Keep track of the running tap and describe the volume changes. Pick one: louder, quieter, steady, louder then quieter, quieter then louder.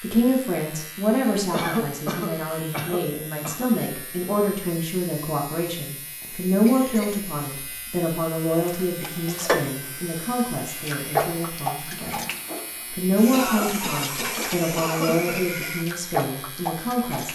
quieter then louder.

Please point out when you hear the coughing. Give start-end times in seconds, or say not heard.
1.5-3.6, 6.2-7.2, 13.3-15.7.